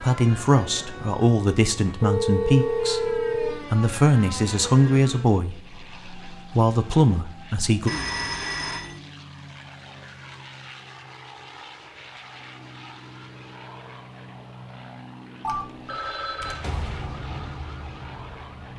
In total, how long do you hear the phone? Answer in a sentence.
You can hear the phone for 4 seconds altogether.